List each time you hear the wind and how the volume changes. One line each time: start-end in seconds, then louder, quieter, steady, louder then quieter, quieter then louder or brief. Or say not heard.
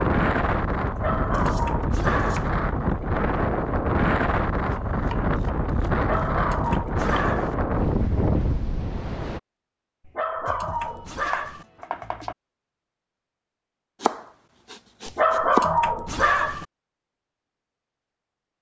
0.0-9.4 steady.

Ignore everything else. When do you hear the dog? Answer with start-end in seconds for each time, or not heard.
0.9-2.5, 6.0-7.5, 10.1-11.7, 15.1-16.6.